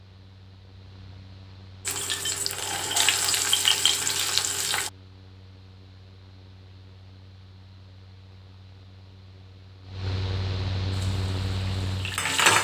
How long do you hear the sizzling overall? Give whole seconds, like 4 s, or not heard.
5 s.